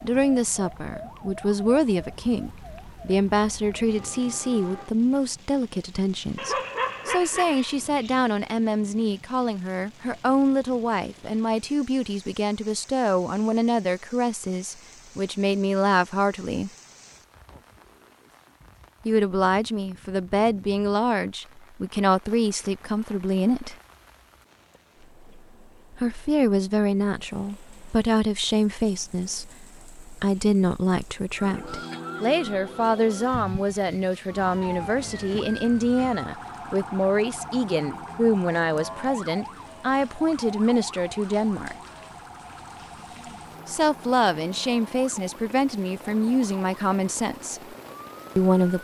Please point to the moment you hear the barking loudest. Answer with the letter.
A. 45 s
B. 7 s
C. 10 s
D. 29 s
B.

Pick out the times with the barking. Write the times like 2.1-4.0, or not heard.
6.3-8.2.